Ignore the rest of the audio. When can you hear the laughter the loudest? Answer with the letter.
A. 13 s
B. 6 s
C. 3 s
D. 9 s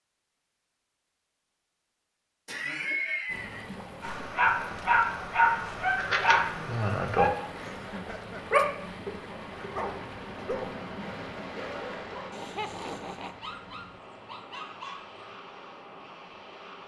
C.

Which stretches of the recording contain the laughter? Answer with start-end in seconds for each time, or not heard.
2.5-3.7, 7.5-8.6, 12.3-13.4.